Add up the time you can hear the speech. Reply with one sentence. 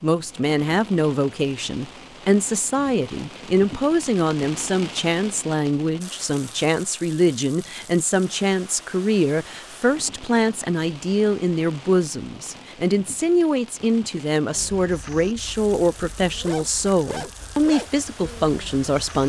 You can hear the speech for 19 seconds altogether.